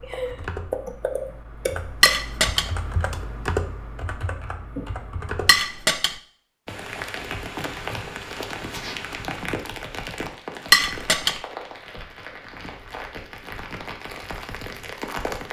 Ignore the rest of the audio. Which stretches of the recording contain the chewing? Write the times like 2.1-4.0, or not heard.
not heard.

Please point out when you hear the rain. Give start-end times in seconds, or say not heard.
6.7-15.4.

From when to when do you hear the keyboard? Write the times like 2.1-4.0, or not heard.
0.0-5.5.